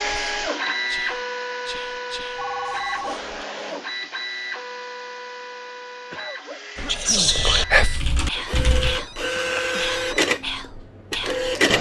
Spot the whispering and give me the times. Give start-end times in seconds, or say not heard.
0.0-3.3, 6.8-11.4.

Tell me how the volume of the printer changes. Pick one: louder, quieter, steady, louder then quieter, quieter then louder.
quieter then louder.